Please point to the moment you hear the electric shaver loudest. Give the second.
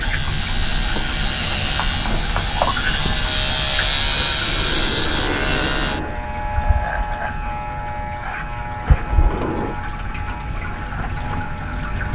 4 s.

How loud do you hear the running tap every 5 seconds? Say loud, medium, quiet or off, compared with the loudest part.
loud, medium, loud.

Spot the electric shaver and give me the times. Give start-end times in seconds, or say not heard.
0.0-12.0.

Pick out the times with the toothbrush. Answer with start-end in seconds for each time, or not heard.
not heard.